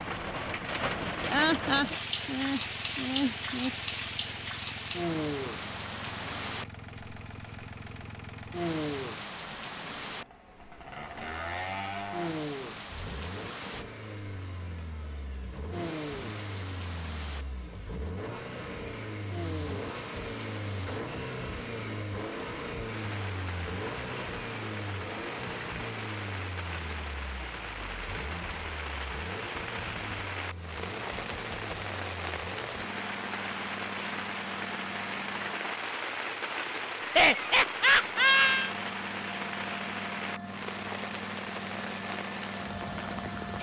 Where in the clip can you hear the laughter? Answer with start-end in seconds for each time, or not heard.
1.3-3.7, 37.0-38.8.